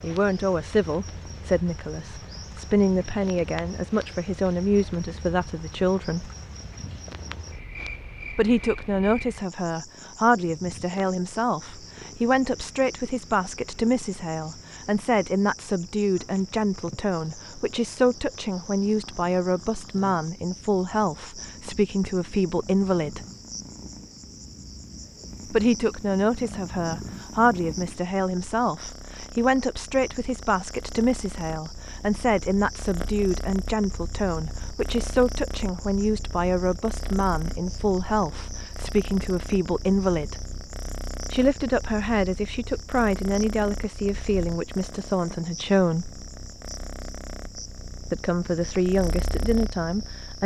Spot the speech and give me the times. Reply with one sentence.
You can hear the speech from 0.0 to 6.3 s, from 8.3 to 23.2 s, from 25.5 to 40.4 s, from 41.3 to 46.1 s and from 48.1 to 50.4 s.